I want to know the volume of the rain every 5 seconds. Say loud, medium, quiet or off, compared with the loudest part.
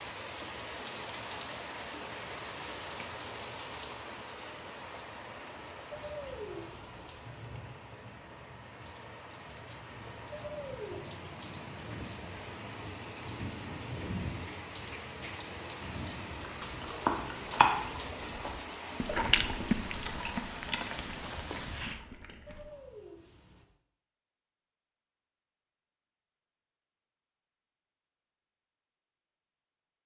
loud, medium, loud, loud, loud, off.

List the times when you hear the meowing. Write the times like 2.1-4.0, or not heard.
5.9-7.1, 10.3-11.0, 22.4-23.6.